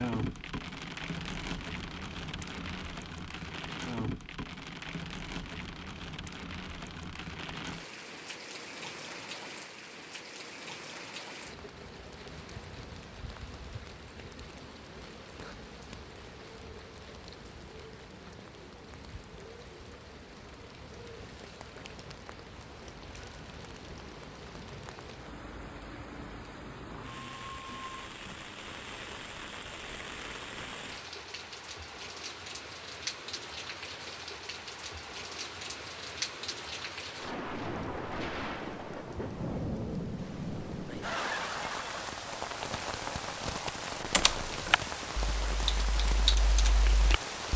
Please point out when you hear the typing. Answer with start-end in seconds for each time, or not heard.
44.1-47.5.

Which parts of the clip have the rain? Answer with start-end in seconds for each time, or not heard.
0.0-47.5.